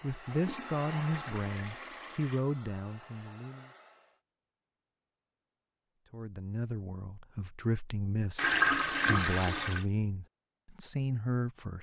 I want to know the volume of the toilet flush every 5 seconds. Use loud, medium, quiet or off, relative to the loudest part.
quiet, loud, off.